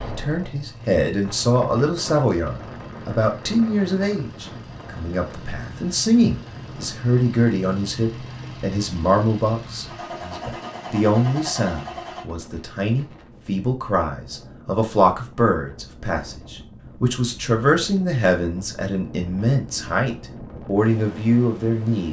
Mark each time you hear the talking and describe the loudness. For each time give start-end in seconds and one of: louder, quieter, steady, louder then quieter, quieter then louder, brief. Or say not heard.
0.1-22.0 steady.